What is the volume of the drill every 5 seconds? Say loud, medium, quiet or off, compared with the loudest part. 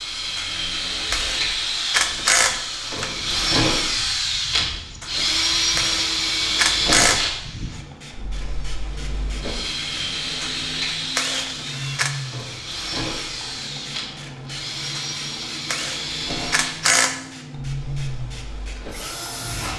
loud, loud, medium, medium.